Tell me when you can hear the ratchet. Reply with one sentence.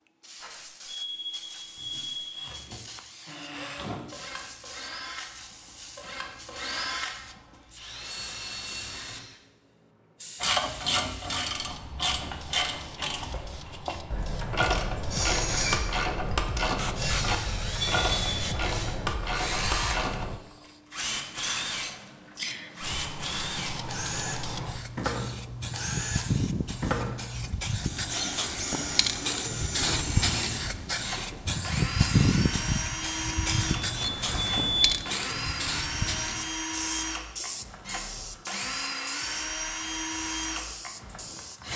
The ratchet can be heard from 10.4 to 20.4 s.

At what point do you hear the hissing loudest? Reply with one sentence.
The volume of the hissing peaks at 32 seconds.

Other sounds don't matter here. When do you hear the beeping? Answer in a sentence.
You can hear the beeping from 0.4 to 2.4 s, from 17.8 to 18.4 s and from 33.6 to 34.9 s.